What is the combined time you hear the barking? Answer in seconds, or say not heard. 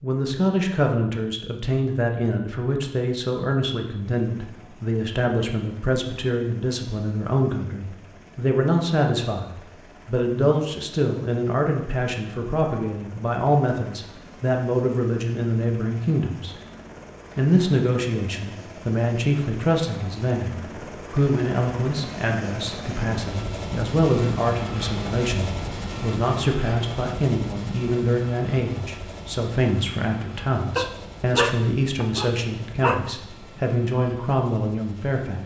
2 s.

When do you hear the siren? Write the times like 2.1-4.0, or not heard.
not heard.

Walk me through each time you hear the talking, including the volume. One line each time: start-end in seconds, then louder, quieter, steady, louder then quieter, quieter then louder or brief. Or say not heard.
0.0-16.6 steady
17.4-35.4 steady.